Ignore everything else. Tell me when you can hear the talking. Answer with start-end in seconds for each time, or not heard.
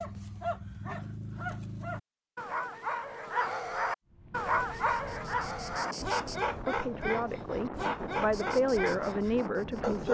6.7-10.0.